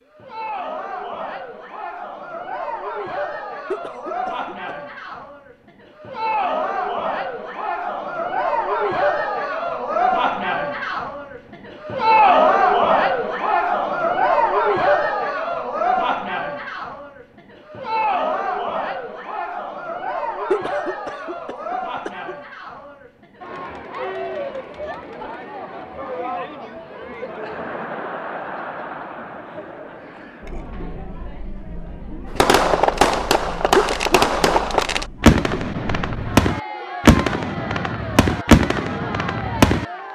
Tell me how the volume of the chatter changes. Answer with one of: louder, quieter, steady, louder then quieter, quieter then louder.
louder then quieter.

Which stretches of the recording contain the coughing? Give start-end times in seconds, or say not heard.
3.7-4.7, 20.5-22.4, 33.8-35.5.